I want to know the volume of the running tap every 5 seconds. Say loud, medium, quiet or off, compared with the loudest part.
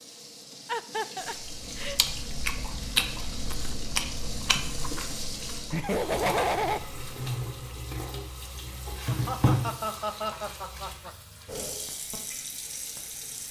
medium, loud, medium.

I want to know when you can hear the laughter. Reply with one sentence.
You can hear the laughter from 0.7 to 1.9 s, from 5.7 to 6.8 s and from 9.1 to 11.1 s.